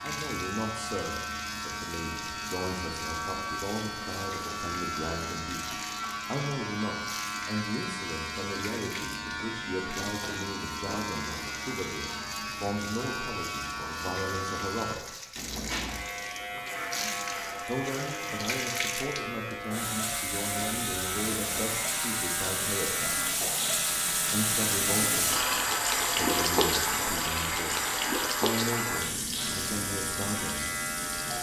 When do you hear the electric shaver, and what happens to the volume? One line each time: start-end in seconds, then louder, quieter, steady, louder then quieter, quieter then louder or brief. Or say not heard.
0.0-31.3 steady.